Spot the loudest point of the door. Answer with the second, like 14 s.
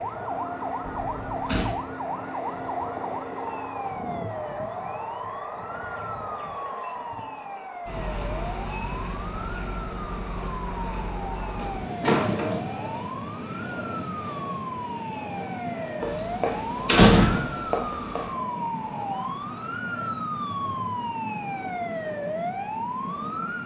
17 s.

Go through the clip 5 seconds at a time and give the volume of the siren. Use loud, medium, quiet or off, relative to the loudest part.
loud, medium, medium, loud, loud.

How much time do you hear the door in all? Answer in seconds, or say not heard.
4 s.